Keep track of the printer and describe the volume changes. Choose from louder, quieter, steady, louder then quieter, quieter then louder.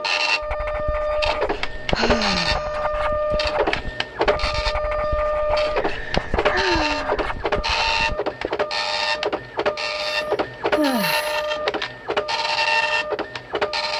steady.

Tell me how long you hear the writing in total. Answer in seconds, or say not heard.
8 s.